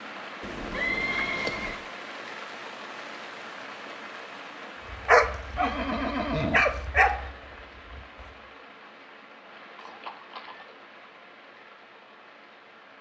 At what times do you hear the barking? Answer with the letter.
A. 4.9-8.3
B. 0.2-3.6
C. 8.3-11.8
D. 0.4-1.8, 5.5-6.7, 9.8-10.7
A.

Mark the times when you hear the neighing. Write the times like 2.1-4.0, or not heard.
0.4-1.8, 5.5-6.7, 9.8-10.7.